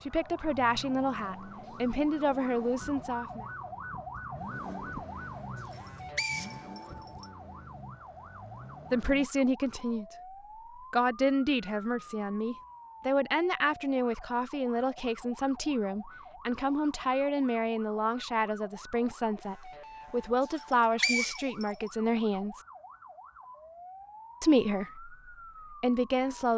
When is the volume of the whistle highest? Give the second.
21 s.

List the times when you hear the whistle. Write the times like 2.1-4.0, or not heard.
5.7-7.2, 20.5-21.6.